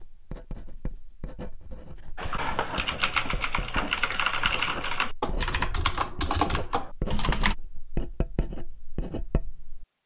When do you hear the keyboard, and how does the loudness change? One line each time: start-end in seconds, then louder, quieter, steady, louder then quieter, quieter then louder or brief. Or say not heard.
2.1-7.5 steady.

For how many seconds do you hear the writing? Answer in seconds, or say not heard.
10 s.